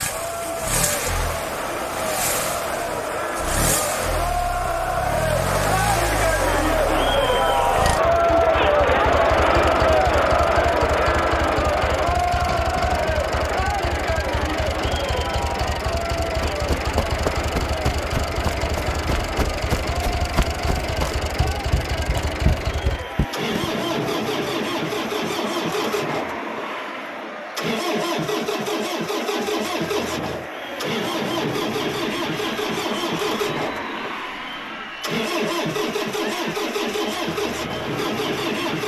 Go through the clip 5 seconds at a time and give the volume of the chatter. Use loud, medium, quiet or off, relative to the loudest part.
medium, loud, loud, medium, quiet, quiet, quiet, quiet.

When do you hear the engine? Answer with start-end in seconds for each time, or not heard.
0.0-38.8.